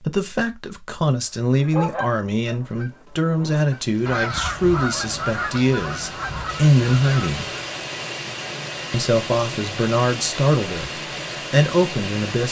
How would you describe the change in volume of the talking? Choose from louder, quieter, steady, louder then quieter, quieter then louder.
steady.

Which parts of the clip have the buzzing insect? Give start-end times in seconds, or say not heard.
not heard.